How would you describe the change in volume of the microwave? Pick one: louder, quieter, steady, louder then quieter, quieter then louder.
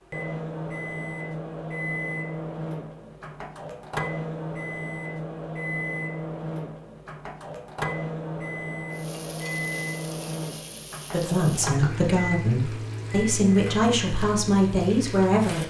steady.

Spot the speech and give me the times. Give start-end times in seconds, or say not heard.
11.1-15.6.